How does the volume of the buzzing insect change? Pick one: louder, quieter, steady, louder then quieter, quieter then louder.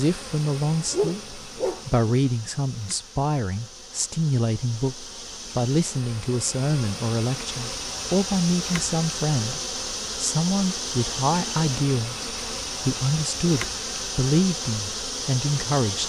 louder.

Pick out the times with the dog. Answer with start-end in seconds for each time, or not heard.
0.9-2.0.